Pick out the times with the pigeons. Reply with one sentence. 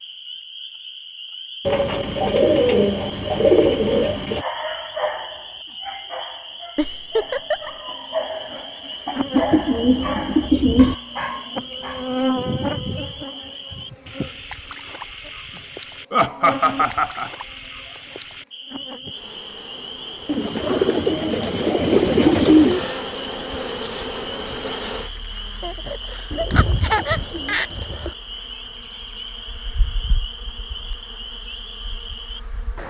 The pigeons can be heard from 1.6 to 4.5 s, from 9.3 to 10.9 s, from 20.2 to 22.9 s and from 26.3 to 28.1 s.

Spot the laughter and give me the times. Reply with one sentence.
The laughter can be heard from 6.8 to 7.7 s, from 16.1 to 17.3 s and from 25.6 to 27.6 s.